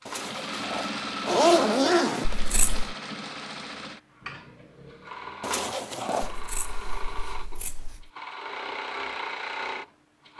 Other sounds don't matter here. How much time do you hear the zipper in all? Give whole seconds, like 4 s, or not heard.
3 s.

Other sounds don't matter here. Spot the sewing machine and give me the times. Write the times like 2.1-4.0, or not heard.
0.0-10.3.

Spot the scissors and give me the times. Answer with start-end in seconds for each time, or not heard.
2.2-3.0, 6.2-8.1.